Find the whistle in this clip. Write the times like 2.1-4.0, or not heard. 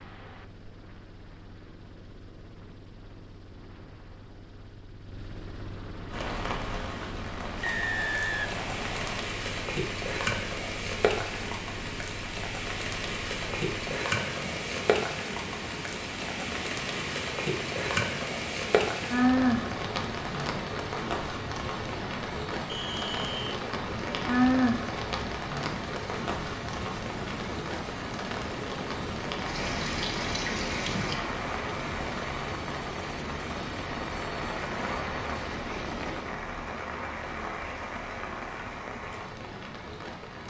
7.6-9.2, 22.6-23.4.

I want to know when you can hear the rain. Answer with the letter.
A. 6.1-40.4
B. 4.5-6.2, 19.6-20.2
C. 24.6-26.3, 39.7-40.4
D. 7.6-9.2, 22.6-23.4
A.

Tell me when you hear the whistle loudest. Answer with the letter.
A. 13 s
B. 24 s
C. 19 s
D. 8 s
D.